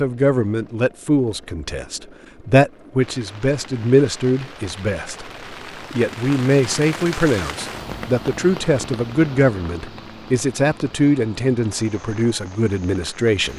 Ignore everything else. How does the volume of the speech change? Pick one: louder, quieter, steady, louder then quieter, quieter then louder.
steady.